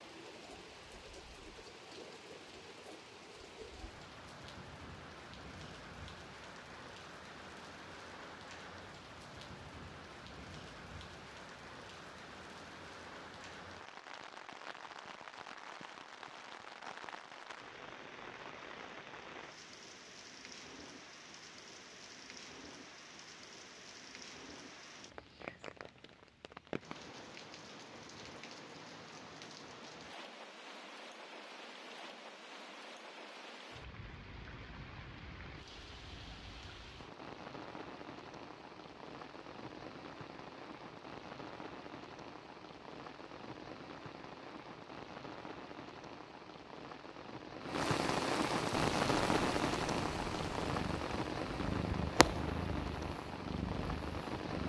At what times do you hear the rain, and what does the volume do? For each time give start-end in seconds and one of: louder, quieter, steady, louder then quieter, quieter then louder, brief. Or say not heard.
0.0-54.6 louder.